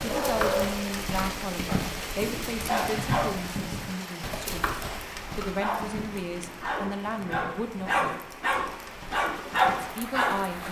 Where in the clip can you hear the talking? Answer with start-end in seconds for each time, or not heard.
0.0-8.3, 9.8-10.6.